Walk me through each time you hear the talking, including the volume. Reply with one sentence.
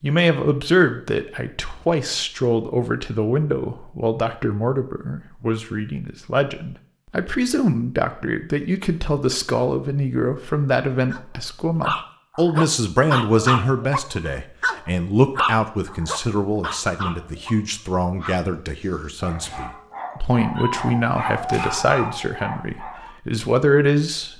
You can hear the talking from 0.0 to 24.3 s, at a steady volume.